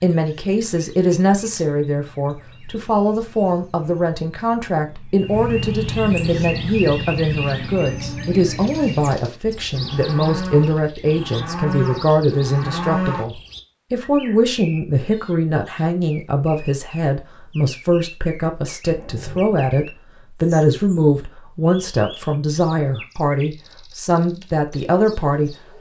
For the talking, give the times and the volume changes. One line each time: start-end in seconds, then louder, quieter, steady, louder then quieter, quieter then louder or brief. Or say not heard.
0.0-25.7 steady.